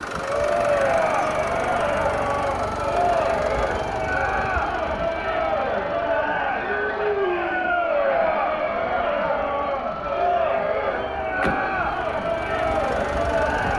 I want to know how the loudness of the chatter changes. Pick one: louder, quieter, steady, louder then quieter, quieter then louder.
steady.